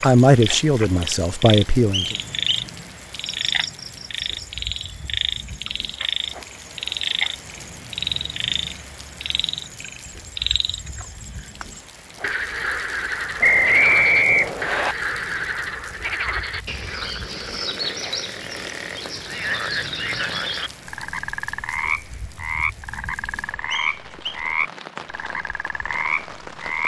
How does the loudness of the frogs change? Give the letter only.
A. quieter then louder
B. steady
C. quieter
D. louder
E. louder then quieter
B.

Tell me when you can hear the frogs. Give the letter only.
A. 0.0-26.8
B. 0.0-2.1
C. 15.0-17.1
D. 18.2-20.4
A.